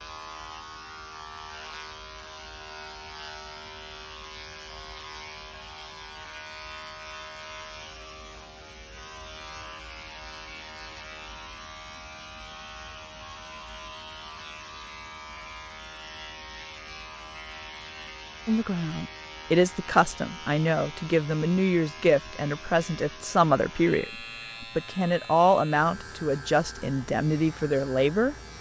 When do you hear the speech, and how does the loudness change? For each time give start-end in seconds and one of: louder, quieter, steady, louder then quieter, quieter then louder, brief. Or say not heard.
18.4-28.4 steady.